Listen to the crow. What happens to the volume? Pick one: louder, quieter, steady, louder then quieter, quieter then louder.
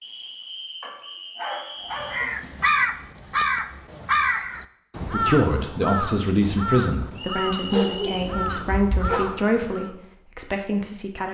quieter.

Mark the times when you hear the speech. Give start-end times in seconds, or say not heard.
5.0-11.2.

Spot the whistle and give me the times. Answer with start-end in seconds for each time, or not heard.
0.0-2.2, 7.2-8.3.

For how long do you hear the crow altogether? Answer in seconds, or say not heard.
8 s.